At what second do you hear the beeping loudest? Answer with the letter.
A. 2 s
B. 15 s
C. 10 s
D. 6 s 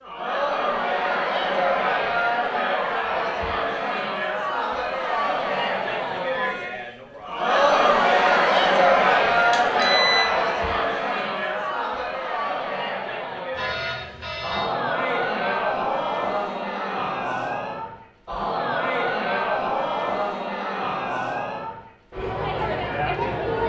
C.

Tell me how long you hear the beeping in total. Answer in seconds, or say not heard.
2 s.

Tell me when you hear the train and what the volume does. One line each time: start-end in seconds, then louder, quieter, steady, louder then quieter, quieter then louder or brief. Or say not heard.
not heard.